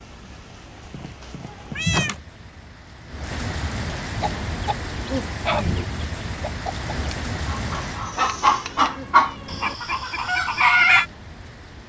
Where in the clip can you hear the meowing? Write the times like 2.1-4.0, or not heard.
0.9-2.2, 8.2-9.8.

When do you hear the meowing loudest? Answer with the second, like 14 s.
2 s.